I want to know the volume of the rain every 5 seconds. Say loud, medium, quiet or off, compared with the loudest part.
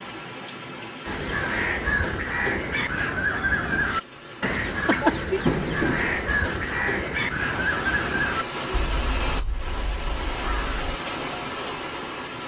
medium, loud, loud.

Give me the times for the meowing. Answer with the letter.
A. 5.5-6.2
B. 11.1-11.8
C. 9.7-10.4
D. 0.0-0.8
A.